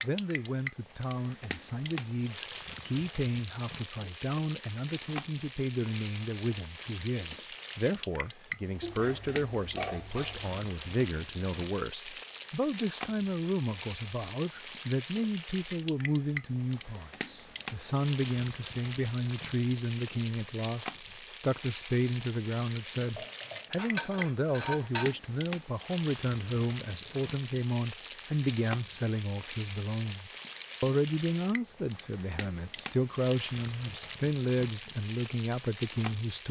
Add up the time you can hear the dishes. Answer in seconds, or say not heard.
4 s.